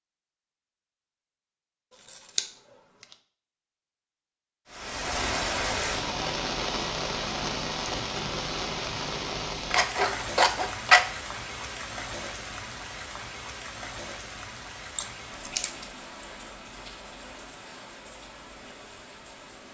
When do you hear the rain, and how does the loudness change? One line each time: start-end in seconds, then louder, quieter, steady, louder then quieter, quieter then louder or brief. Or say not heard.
4.7-19.6 quieter.